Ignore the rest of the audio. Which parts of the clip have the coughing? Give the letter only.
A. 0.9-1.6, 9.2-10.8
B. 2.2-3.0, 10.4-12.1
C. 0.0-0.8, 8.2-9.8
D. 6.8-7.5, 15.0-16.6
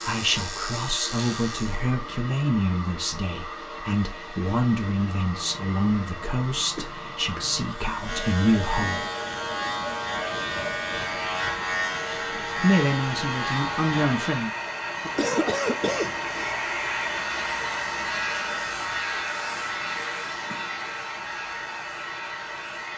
D.